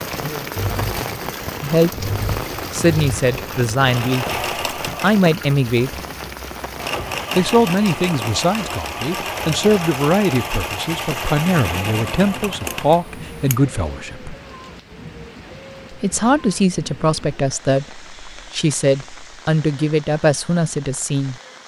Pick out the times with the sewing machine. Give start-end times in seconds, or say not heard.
0.0-13.6.